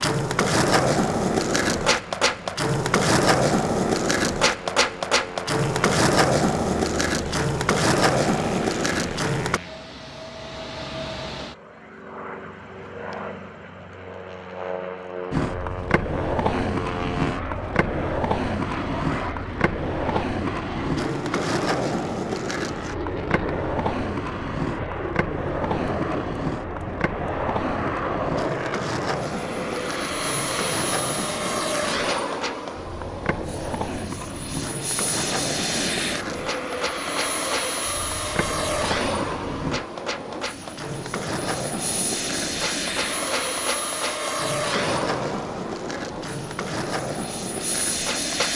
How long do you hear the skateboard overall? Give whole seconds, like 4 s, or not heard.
43 s.